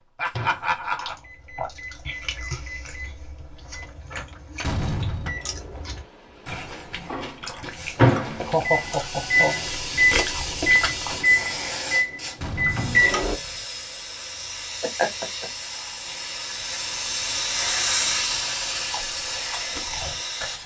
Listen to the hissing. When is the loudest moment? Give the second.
18 s.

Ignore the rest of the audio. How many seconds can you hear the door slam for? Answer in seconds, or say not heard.
2 s.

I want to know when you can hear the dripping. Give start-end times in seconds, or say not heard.
not heard.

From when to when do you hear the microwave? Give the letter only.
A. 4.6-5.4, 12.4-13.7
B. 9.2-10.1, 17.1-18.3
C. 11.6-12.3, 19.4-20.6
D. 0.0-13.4
D.